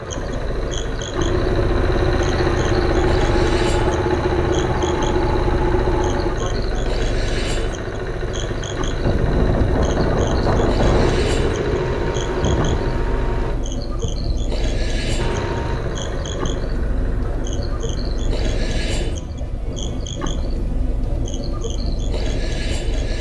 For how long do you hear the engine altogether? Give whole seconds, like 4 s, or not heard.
17 s.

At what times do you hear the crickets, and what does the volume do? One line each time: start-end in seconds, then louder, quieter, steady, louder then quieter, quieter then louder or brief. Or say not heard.
0.0-23.1 steady.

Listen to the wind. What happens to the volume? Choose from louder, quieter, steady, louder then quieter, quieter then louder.
quieter.